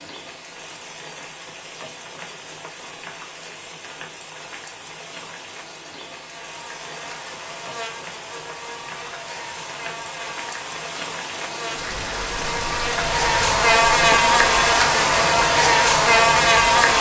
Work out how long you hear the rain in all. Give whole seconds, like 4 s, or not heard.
17 s.